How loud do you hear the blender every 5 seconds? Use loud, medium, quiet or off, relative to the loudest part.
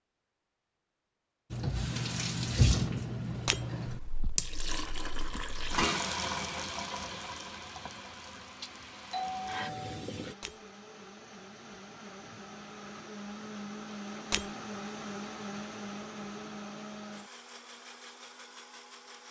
off, medium, loud, loud.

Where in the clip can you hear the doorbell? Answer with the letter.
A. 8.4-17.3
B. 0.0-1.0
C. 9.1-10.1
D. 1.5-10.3
C.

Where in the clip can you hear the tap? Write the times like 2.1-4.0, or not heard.
1.5-10.3.